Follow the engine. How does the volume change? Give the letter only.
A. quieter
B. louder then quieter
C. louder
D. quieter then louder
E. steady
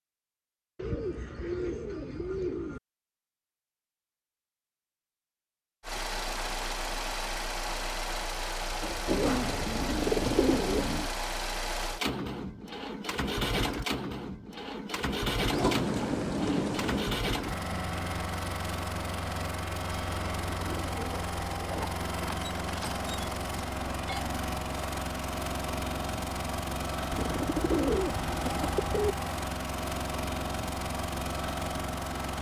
E.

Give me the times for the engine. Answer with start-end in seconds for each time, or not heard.
5.8-32.3.